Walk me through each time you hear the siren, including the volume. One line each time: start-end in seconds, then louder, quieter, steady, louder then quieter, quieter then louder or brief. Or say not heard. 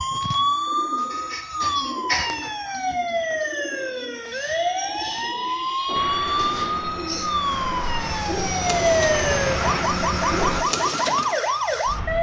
0.0-12.1 steady.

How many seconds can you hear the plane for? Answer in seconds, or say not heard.
5 s.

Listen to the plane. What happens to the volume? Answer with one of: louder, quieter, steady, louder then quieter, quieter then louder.
louder.